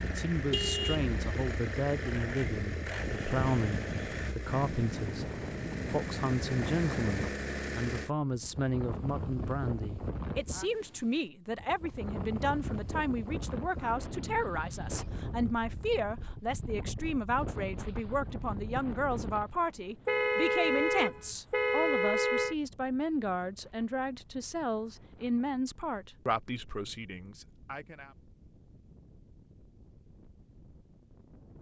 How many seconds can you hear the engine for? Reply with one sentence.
The engine can be heard for 8 seconds in total.